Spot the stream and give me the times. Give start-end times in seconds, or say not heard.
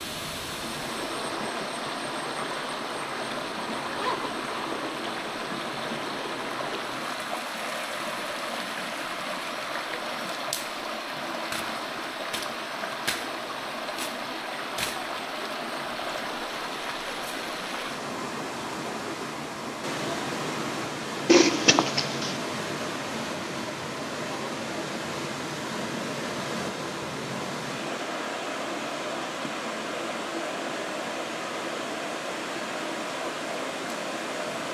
0.0-34.6.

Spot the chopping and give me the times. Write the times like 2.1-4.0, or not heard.
not heard.